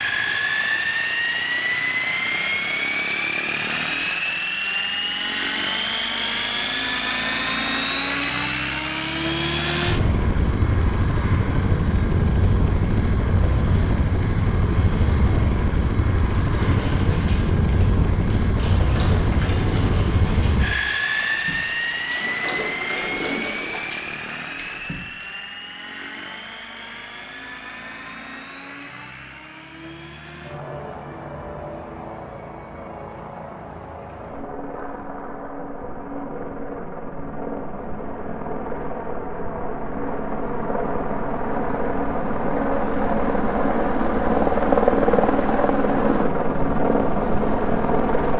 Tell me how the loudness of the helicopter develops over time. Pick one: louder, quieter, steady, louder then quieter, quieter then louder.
quieter then louder.